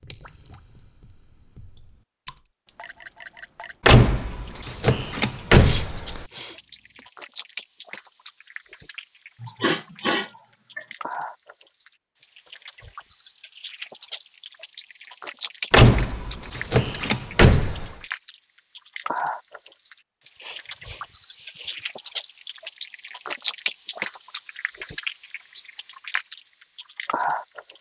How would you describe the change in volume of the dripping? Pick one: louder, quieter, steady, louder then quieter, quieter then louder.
louder.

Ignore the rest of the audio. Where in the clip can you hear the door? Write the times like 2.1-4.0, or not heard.
3.9-6.2, 15.7-17.9.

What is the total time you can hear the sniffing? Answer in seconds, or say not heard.
4 s.